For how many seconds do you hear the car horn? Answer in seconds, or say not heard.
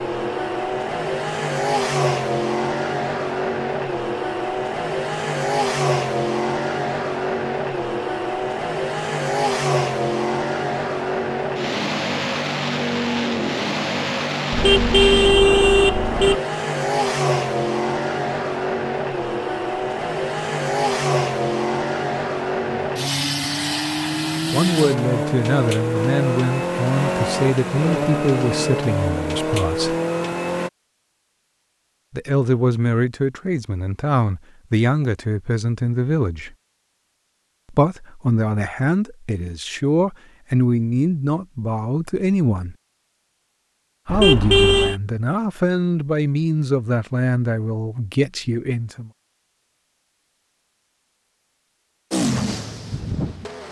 3 s.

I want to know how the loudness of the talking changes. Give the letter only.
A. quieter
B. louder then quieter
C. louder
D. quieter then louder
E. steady
E.